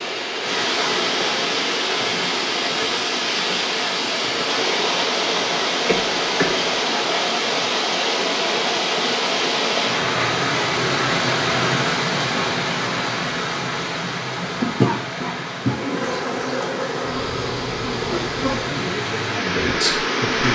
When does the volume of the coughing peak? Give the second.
15 s.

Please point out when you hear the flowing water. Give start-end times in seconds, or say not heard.
0.0-20.4.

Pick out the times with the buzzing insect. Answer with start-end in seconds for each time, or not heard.
15.7-18.8.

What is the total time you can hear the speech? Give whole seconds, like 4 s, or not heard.
2 s.